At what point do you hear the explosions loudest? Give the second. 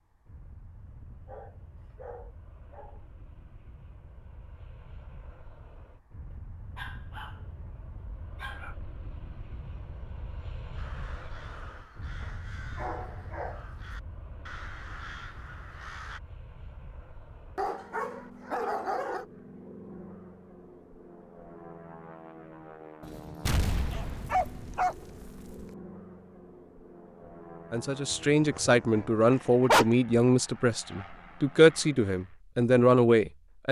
24 s.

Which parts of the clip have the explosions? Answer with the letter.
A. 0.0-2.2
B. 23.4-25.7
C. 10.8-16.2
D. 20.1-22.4
B.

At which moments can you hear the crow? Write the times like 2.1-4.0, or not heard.
10.8-16.2.